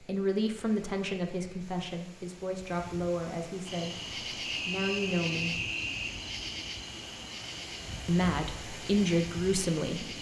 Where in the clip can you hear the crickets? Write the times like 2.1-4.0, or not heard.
3.6-10.1.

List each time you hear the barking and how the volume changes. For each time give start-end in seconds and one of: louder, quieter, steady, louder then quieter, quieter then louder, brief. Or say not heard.
not heard.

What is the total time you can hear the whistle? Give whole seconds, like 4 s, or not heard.
2 s.